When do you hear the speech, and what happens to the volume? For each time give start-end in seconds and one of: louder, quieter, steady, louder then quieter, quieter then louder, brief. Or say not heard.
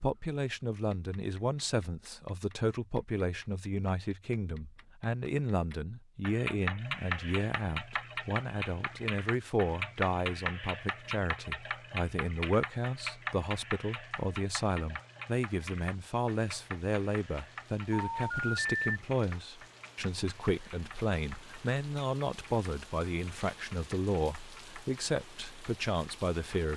0.0-26.7 steady.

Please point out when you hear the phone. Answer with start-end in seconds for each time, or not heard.
17.9-18.9.